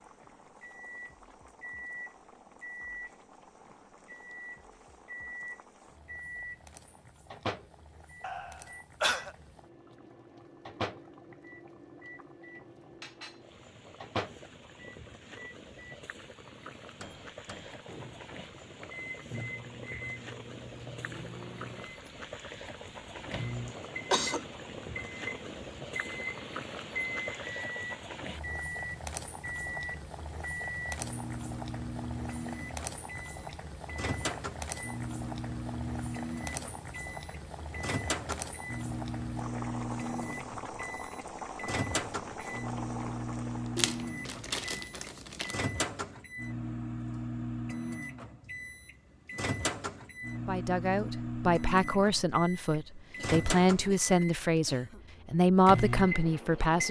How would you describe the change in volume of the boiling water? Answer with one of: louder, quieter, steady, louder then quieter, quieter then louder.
louder.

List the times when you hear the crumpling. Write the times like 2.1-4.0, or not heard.
43.8-45.6.